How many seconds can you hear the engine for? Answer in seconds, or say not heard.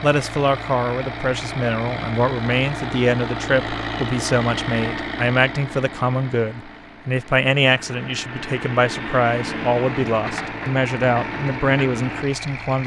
13 s.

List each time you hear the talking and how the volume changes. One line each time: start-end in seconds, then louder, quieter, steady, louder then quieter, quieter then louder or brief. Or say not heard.
0.0-12.8 steady.